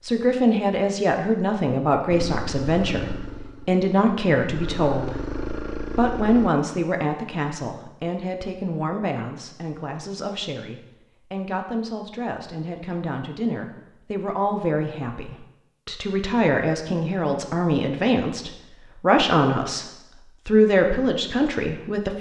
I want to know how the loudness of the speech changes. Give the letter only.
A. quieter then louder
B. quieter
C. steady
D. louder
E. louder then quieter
A.